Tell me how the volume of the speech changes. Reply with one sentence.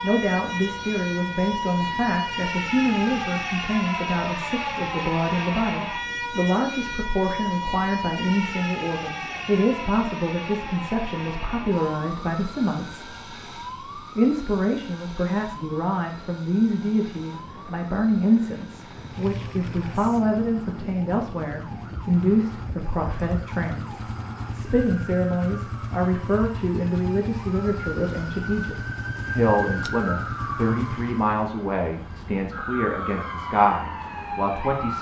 The volume of the speech stays about the same.